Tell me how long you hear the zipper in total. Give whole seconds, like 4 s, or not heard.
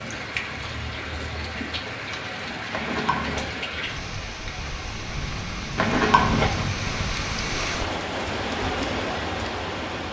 2 s.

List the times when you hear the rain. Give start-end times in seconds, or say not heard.
0.0-10.0.